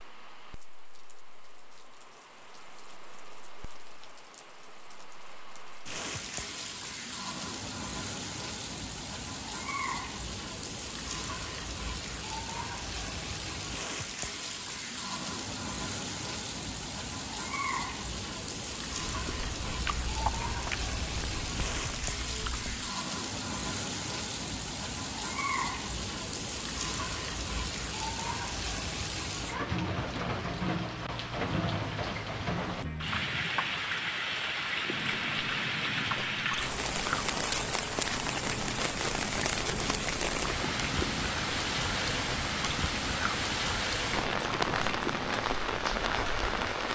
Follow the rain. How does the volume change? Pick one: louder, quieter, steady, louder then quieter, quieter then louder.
louder.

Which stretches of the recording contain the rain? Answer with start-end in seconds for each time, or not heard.
0.0-46.9.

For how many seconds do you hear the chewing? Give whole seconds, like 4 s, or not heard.
15 s.